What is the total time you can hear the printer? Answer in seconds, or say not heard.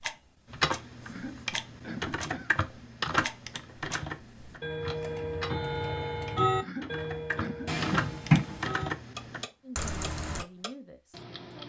not heard.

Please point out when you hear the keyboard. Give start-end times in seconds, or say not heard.
0.5-10.4.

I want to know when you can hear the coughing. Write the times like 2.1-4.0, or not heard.
1.0-2.6, 6.5-7.8.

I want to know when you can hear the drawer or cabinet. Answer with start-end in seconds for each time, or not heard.
7.7-8.7.